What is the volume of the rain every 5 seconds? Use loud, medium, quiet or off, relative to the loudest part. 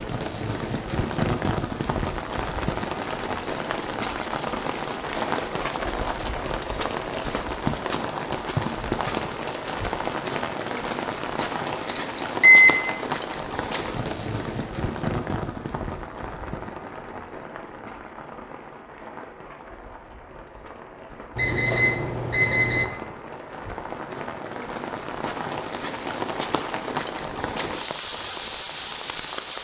loud, loud, loud, medium, medium, loud.